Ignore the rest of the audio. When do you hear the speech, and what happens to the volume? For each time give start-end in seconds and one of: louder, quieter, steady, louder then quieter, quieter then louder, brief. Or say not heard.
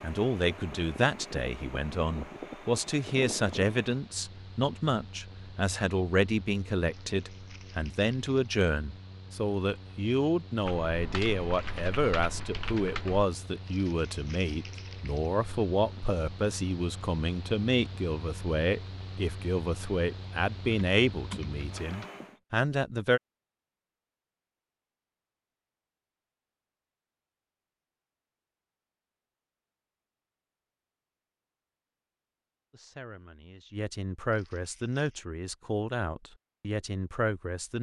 0.0-23.2 steady
32.7-37.7 louder.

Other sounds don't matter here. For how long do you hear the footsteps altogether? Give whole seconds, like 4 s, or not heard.
not heard.